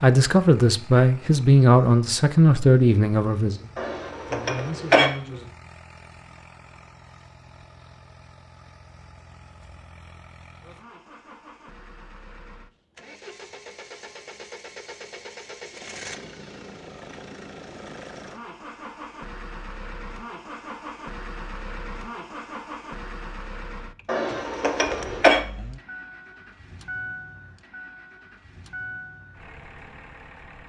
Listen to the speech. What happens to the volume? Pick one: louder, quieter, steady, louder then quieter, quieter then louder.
quieter.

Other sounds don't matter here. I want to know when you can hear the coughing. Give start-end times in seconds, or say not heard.
3.8-5.1, 24.1-25.4.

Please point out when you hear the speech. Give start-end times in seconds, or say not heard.
0.0-5.5.